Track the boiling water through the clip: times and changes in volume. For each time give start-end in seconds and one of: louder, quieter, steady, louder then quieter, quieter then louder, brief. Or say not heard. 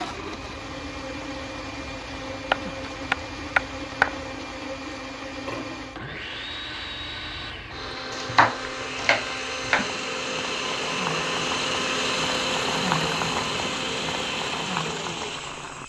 0.0-15.8 louder.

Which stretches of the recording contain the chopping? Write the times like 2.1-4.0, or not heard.
2.5-4.2, 8.1-9.9.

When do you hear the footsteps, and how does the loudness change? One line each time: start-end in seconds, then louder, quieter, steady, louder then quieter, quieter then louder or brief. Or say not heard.
not heard.